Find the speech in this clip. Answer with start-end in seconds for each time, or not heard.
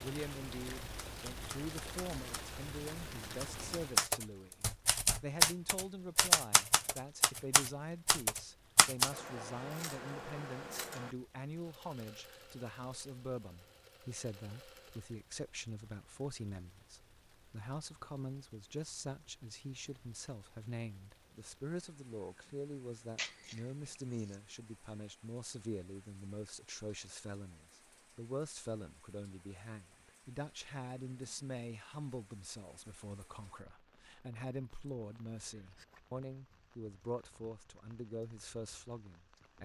0.0-39.6.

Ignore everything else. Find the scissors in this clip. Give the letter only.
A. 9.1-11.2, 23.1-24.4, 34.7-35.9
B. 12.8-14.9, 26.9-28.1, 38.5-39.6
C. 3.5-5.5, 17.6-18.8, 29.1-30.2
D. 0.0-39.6
A.